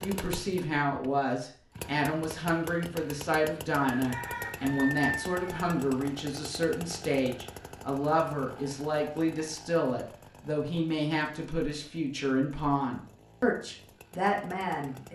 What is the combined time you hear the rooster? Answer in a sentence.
You can hear the rooster for 2 seconds altogether.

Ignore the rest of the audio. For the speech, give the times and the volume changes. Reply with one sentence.
The speech can be heard from 0.0 to 15.0 s, at a steady volume.